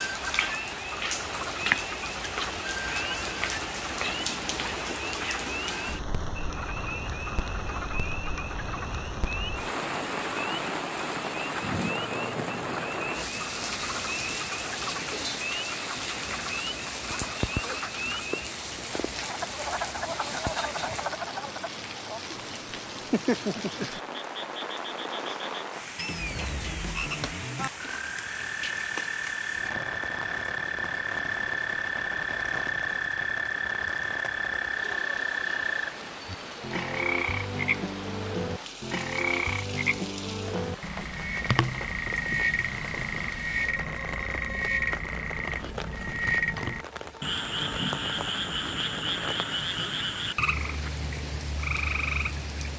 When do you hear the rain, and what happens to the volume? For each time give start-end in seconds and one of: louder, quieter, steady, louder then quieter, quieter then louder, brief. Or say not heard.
0.0-52.7 quieter.